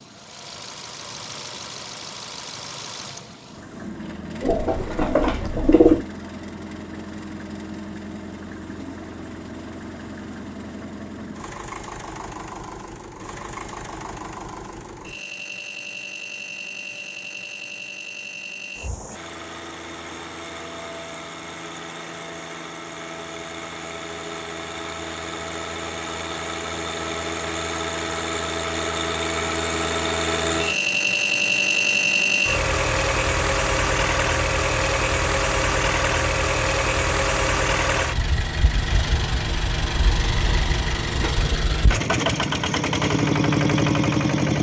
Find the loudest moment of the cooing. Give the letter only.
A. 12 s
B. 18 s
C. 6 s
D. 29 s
C.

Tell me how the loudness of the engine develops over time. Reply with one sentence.
The loudness of the engine goes up.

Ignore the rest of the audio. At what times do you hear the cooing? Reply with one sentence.
You can hear the cooing from 4.4 to 6.0 s.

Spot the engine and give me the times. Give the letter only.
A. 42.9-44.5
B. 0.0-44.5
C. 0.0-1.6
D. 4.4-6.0
B.